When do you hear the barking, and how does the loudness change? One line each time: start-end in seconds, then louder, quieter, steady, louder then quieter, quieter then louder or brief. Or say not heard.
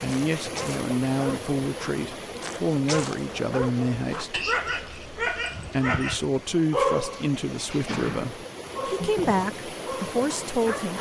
0.0-10.9 louder then quieter.